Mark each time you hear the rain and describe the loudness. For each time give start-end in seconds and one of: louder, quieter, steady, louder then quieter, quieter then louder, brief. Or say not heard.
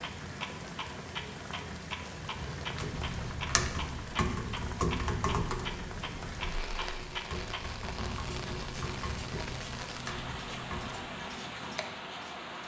0.0-12.6 steady.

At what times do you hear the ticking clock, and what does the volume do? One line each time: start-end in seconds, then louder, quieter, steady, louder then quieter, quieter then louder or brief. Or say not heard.
0.0-12.6 steady.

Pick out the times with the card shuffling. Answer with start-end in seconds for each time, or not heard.
2.3-3.8.